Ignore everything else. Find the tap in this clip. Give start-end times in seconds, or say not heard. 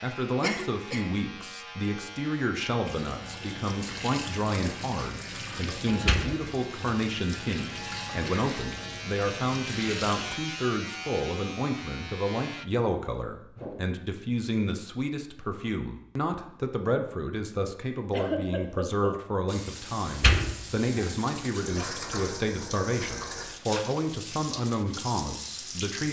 2.9-10.3, 19.4-26.0.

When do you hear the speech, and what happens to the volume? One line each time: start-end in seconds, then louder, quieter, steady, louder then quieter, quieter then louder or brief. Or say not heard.
0.0-26.0 steady.